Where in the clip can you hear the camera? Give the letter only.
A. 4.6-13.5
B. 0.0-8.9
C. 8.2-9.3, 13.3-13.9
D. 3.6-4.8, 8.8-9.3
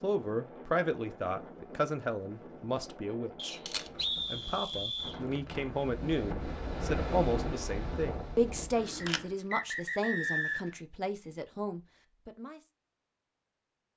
D.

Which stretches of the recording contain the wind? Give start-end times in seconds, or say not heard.
0.0-8.9.